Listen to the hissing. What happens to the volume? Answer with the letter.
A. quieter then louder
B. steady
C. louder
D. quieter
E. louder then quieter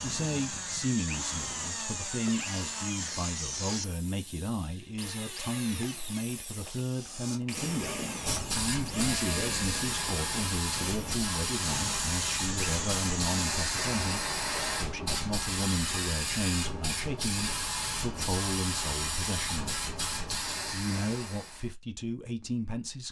B.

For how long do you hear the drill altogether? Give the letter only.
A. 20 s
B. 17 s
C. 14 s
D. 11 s
C.